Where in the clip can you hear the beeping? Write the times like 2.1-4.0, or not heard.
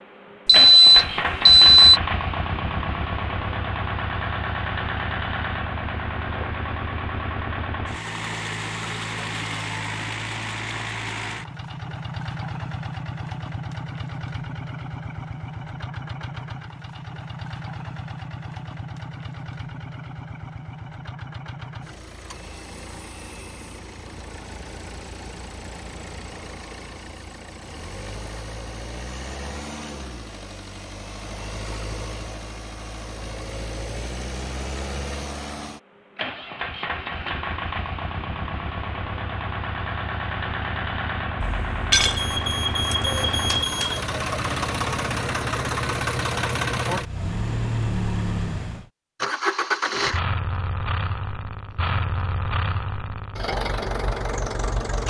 0.5-2.0, 41.4-44.0.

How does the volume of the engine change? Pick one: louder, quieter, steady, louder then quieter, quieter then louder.
quieter then louder.